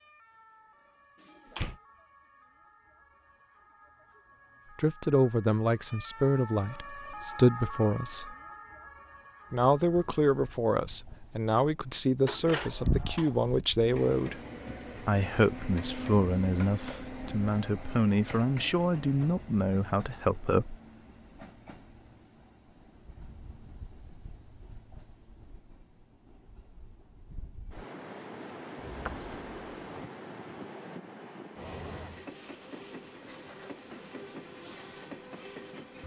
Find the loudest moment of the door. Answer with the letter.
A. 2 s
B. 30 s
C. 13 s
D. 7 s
C.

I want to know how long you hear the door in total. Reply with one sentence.
You can hear the door for 3 seconds altogether.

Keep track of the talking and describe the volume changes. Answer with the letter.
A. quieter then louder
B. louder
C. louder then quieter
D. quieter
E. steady
E.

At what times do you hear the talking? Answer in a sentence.
The talking can be heard from 4.8 to 8.3 s and from 9.5 to 20.8 s.